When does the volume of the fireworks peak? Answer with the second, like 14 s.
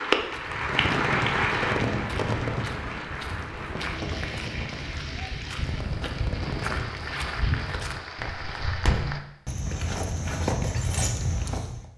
2 s.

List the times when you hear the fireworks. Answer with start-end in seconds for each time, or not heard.
0.6-7.0.